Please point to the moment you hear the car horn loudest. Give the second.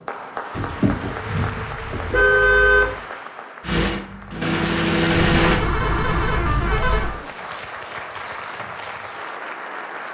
3 s.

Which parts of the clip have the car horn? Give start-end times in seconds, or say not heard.
0.6-3.0, 5.1-7.2.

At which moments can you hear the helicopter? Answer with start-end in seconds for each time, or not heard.
3.6-5.7.